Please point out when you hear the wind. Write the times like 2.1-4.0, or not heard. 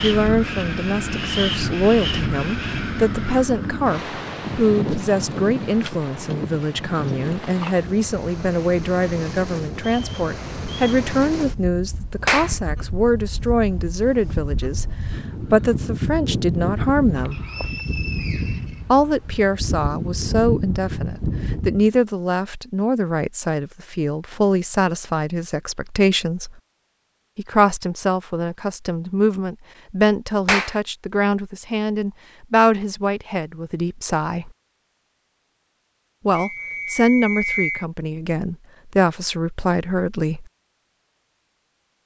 0.0-21.9.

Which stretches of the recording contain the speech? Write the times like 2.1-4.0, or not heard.
0.0-17.4, 18.9-26.6, 27.4-34.5, 36.2-40.5.